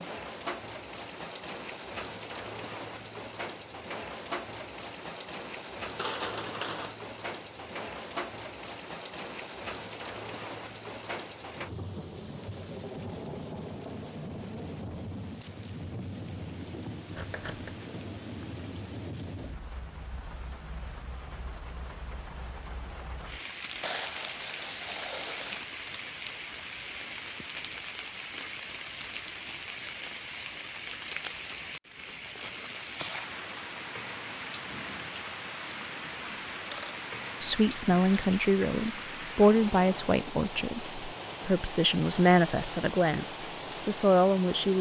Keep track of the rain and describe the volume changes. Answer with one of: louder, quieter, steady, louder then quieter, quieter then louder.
steady.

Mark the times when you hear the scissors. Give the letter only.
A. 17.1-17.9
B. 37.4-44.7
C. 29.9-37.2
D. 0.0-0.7
A.